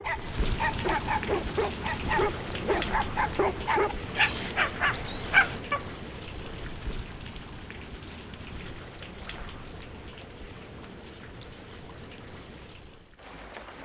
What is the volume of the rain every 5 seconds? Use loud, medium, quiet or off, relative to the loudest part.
loud, medium, medium.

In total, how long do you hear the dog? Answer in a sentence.
The dog can be heard for 6 seconds in total.